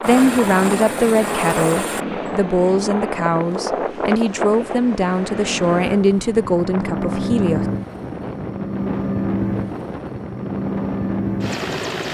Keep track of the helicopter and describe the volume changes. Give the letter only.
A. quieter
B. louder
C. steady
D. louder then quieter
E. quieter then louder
E.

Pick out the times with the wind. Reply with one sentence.
You can hear the wind from 0.0 to 12.0 s.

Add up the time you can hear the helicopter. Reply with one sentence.
The helicopter can be heard for 12 seconds in total.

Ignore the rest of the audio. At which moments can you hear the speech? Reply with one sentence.
The speech can be heard from 0.0 to 7.7 s.